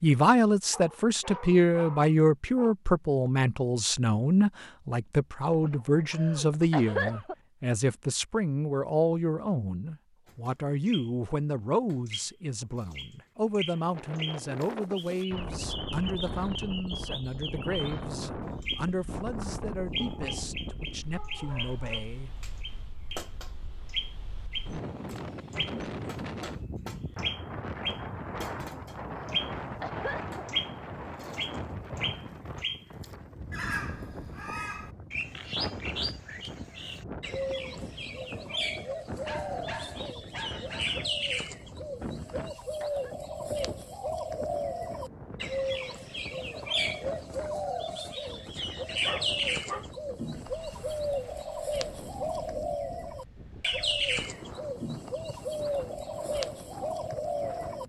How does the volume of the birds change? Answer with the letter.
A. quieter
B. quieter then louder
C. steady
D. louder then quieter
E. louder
E.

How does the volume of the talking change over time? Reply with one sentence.
The volume of the talking goes down.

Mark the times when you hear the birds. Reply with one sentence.
You can hear the birds from 10.2 to 57.8 s.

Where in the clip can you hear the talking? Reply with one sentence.
You can hear the talking from 0.0 to 22.3 s.